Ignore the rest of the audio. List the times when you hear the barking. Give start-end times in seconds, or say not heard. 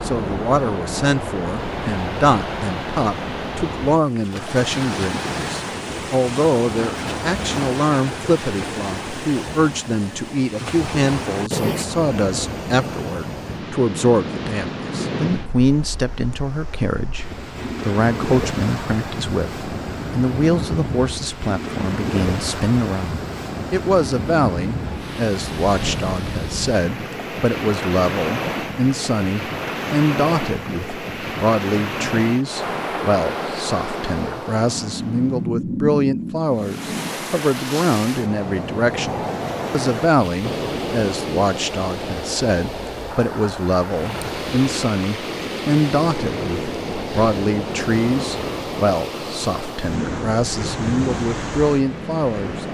not heard.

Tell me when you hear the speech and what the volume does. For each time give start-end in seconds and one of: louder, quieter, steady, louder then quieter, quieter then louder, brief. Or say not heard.
0.0-52.6 steady.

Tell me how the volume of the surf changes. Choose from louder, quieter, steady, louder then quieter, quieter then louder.
steady.